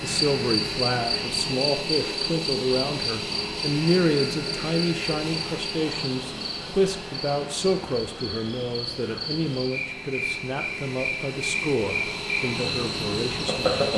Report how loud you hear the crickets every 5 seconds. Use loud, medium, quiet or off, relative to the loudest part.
loud, medium, loud.